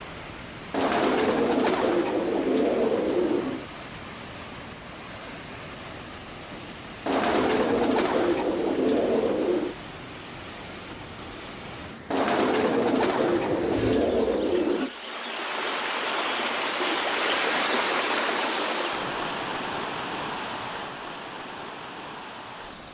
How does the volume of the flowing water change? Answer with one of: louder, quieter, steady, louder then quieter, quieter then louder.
louder.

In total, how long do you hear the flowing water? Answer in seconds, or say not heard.
23 s.